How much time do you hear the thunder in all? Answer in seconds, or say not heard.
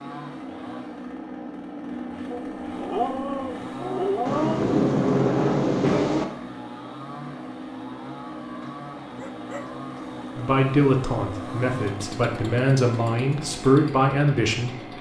2 s.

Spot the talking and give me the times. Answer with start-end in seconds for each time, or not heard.
10.3-14.9.